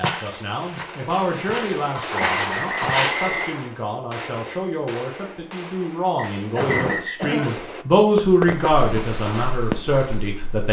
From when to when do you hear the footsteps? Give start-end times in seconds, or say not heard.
0.0-3.2, 8.6-10.6.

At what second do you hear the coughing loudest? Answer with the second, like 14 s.
7 s.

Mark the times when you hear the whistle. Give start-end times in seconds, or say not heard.
2.1-3.7, 6.2-7.3.